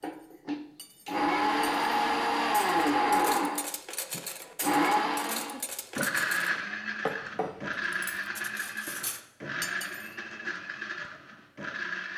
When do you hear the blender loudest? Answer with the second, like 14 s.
3 s.